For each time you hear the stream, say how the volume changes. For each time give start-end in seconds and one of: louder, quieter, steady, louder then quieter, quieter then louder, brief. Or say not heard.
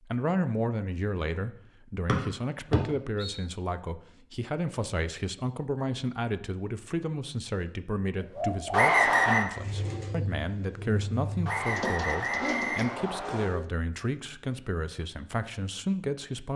not heard.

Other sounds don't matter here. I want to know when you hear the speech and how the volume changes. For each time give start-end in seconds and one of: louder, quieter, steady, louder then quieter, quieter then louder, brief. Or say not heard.
0.0-16.5 steady.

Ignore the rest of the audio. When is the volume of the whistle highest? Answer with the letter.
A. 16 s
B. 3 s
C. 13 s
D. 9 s
D.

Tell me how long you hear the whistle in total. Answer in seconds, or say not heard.
4 s.